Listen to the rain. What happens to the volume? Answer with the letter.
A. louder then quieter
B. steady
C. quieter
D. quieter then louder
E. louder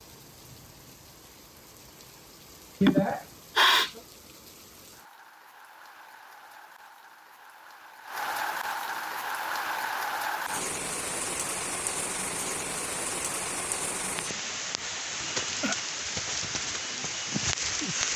E.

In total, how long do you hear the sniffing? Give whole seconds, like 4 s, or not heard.
2 s.